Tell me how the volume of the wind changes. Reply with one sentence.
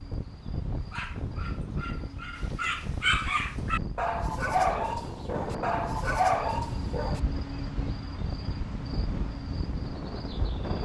The loudness of the wind stays about the same.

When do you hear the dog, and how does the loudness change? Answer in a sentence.
You can hear the dog from 0.9 to 7.2 s, getting louder.